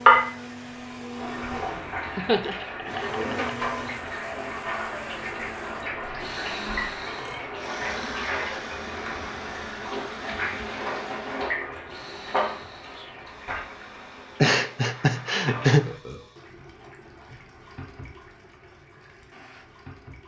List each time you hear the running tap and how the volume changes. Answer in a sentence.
The running tap can be heard from 0.0 to 20.2 s, getting quieter.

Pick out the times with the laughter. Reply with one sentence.
The laughter can be heard from 2.1 to 3.5 s and from 14.4 to 15.9 s.